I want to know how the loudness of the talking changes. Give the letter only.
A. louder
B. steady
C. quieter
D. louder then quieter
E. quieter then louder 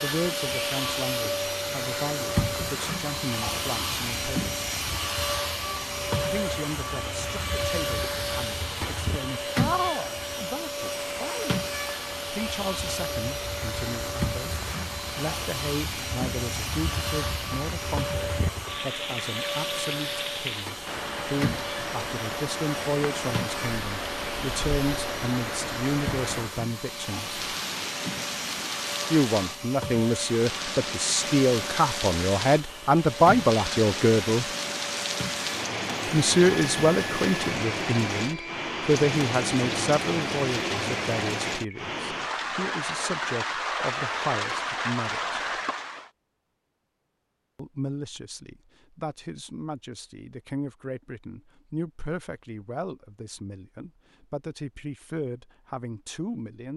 D.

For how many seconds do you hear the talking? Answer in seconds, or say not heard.
49 s.